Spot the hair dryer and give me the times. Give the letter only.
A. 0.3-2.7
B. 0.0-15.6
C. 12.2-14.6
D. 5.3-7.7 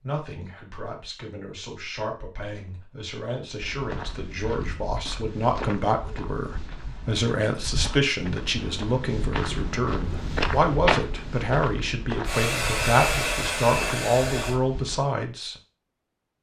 C.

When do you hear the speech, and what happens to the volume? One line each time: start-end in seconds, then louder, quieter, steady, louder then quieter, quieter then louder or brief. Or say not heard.
0.0-15.6 louder.